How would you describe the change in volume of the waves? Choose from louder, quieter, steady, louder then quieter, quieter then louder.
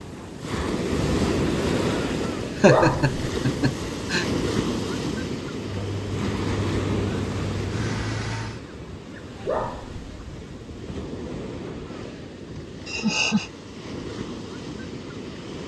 quieter.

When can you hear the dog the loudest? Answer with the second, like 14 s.
3 s.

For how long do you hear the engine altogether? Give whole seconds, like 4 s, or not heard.
3 s.